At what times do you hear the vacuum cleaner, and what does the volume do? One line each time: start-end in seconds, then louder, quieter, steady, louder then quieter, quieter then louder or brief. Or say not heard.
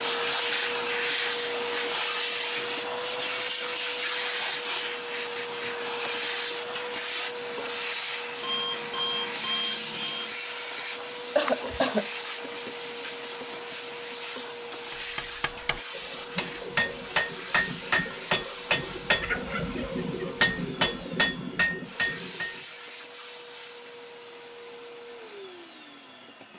0.0-26.5 quieter.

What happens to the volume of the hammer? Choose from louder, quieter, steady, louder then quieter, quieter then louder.
louder.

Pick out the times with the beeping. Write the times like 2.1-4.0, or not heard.
8.4-10.3.